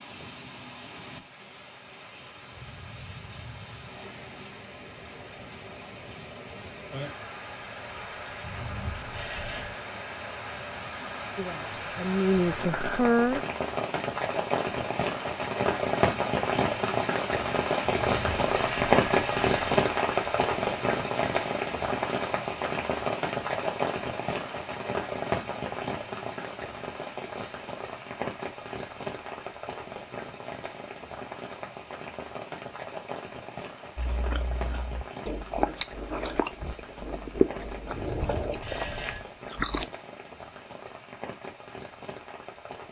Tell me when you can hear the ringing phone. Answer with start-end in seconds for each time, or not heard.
8.4-9.8, 17.9-19.8, 37.9-39.2.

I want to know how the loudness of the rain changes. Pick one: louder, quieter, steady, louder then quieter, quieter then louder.
louder then quieter.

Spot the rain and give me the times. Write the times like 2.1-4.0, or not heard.
0.0-42.8.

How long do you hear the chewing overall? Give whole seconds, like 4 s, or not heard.
6 s.